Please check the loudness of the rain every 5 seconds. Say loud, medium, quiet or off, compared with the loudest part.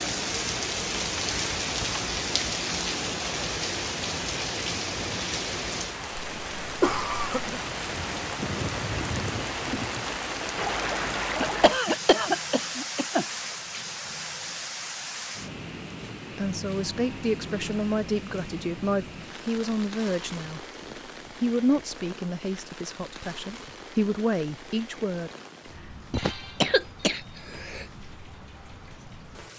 loud, loud, loud, medium, quiet, quiet.